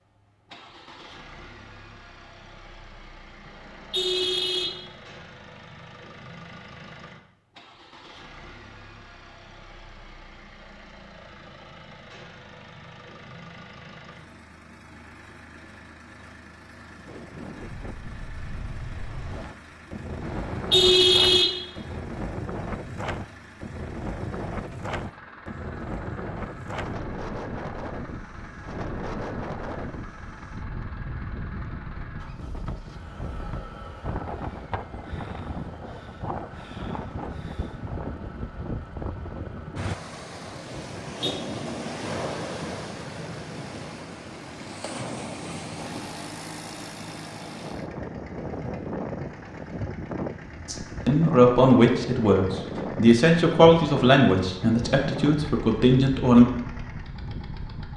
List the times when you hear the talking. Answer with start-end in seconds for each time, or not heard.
50.6-56.5.